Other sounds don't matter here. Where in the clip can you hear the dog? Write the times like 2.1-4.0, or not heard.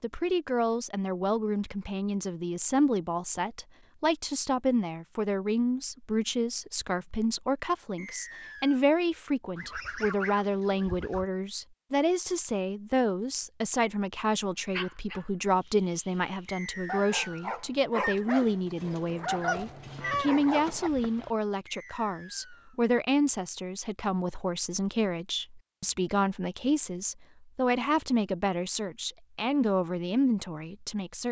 14.7-20.9.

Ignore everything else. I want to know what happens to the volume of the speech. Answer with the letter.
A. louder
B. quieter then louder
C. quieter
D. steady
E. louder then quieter
D.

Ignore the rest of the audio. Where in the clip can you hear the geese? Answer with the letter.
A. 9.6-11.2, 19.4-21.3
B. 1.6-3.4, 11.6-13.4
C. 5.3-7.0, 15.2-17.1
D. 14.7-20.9
A.